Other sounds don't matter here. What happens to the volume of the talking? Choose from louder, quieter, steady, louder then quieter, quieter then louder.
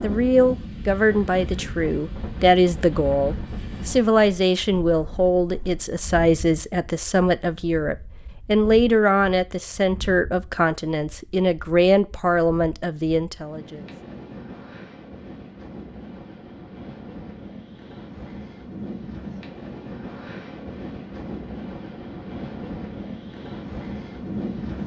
steady.